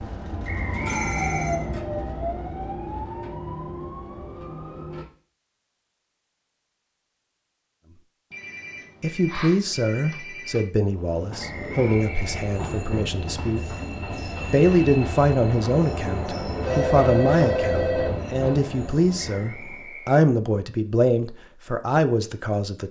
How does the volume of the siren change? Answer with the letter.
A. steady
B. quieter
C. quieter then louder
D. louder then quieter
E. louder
B.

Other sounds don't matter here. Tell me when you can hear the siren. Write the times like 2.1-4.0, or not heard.
0.0-5.0.